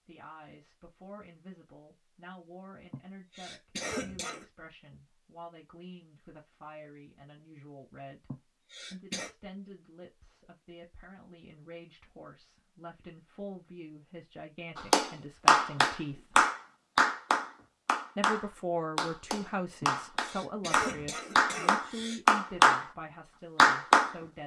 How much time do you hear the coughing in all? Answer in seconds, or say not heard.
5 s.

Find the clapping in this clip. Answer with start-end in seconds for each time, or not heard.
14.8-22.9, 23.6-24.1.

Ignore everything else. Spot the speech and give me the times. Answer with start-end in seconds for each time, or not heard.
0.1-16.4, 18.1-24.4.